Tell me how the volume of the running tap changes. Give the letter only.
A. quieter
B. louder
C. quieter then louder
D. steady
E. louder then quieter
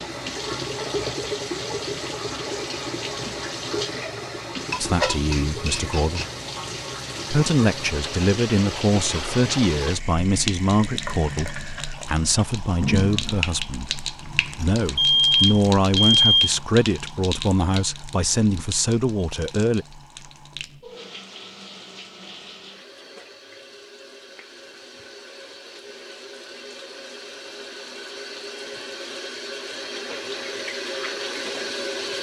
C.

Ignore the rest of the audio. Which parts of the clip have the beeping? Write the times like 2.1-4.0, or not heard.
14.6-16.5.